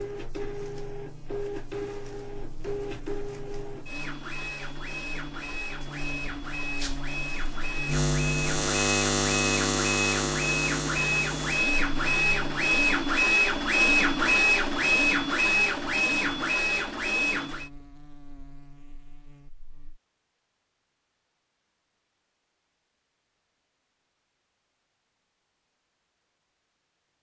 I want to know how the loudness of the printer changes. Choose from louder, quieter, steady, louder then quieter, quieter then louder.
louder.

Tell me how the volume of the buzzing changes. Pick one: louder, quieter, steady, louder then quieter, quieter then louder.
louder then quieter.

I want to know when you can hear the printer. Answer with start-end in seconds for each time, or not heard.
0.0-17.7.